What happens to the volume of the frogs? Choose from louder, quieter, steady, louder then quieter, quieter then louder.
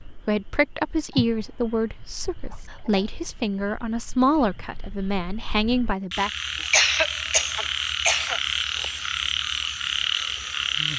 louder.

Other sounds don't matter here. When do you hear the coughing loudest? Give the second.
7 s.